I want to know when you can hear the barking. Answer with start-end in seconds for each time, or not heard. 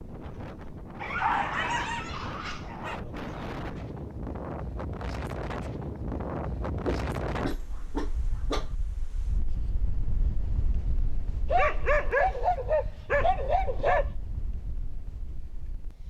1.0-3.0, 6.8-8.7, 11.4-14.1.